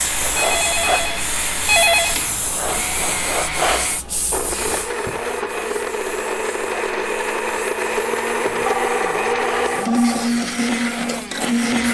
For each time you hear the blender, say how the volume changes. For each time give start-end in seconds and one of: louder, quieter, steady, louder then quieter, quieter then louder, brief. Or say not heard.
0.0-11.9 louder.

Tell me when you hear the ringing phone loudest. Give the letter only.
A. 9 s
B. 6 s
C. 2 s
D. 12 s
C.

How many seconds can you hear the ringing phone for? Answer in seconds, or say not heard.
4 s.